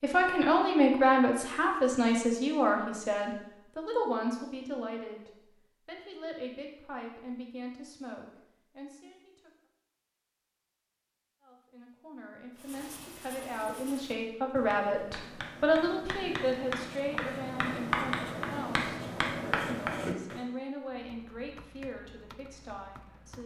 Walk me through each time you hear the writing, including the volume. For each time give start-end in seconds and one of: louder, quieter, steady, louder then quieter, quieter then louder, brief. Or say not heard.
12.6-20.4 louder.